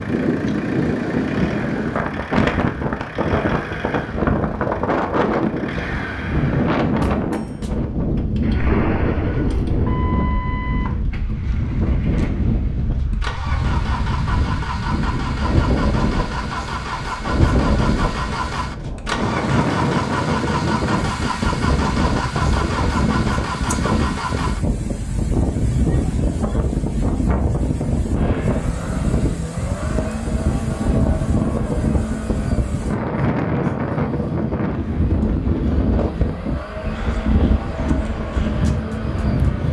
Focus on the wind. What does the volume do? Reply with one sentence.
The loudness of the wind stays about the same.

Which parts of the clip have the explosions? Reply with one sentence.
The explosions can be heard from 8.6 to 9.8 s.